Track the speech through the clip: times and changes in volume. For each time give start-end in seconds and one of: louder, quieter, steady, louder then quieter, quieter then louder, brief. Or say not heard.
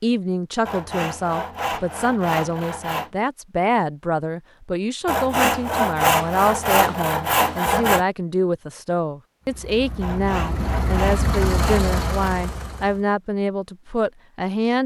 0.0-14.8 steady.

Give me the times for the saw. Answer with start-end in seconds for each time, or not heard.
0.7-3.1, 5.0-8.1, 10.0-12.3.